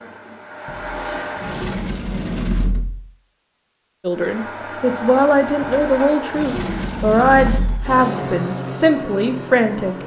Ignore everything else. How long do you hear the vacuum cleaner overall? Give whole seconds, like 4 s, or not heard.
8 s.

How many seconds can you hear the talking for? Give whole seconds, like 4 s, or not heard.
6 s.